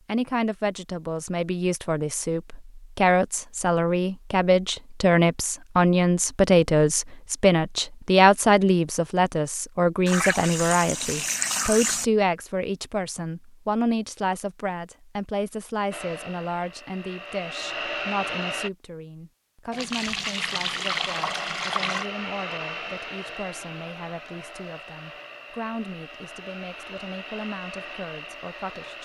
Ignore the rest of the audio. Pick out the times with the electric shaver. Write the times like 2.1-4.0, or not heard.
not heard.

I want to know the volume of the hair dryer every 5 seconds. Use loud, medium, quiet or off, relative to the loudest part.
off, off, off, loud, loud, medium.